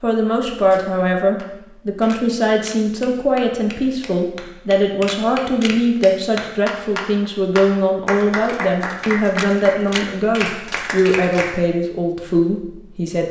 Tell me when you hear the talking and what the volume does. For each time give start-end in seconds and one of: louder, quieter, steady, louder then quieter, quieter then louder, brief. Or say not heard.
0.0-13.2 steady.